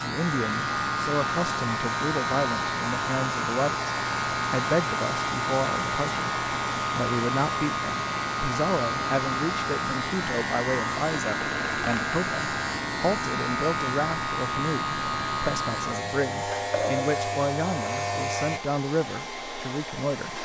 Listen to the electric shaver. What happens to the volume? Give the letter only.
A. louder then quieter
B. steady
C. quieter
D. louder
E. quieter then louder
B.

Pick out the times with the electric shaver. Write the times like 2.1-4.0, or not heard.
0.0-18.6.